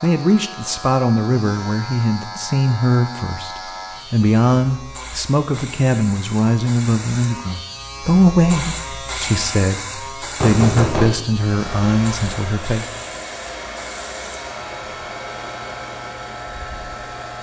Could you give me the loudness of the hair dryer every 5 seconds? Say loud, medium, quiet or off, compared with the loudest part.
off, off, loud, loud.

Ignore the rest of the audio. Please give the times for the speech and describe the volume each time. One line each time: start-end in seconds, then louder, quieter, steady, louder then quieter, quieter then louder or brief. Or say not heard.
0.0-12.8 steady.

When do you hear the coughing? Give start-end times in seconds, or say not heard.
not heard.